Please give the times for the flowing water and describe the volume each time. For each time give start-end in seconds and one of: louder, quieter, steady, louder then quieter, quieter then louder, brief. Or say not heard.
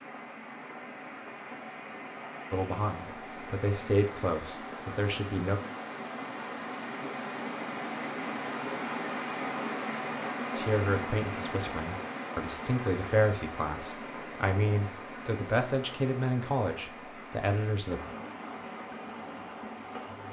0.0-20.2 louder then quieter.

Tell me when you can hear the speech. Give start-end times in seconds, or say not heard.
2.5-5.6, 10.6-18.0.